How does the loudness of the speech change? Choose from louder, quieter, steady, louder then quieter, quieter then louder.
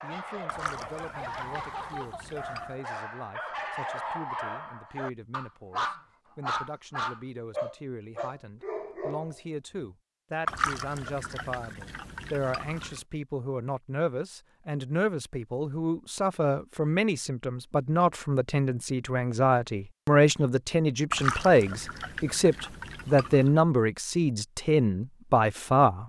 louder.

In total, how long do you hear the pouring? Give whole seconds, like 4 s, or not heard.
7 s.